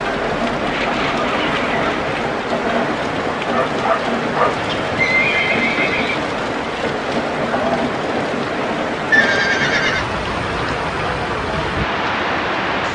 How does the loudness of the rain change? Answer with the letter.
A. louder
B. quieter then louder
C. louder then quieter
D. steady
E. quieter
D.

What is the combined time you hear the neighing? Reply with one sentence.
You can hear the neighing for 4 seconds altogether.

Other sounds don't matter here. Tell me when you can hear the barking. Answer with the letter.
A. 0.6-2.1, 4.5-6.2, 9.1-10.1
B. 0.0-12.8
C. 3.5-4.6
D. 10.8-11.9
C.